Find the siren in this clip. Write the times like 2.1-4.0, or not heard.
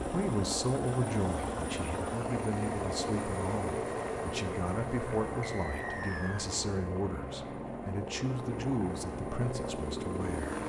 not heard.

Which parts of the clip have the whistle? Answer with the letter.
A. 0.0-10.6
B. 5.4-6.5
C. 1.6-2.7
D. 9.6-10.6
B.